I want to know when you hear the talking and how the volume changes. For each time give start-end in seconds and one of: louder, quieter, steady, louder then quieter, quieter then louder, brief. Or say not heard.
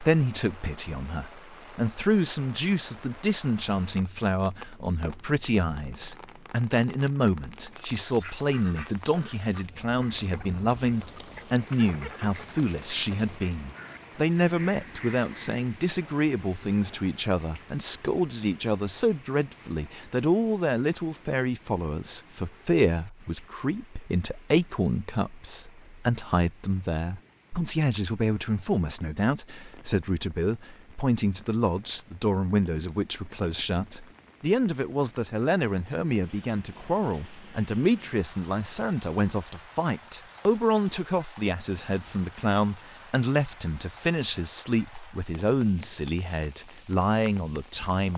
0.0-48.1 steady.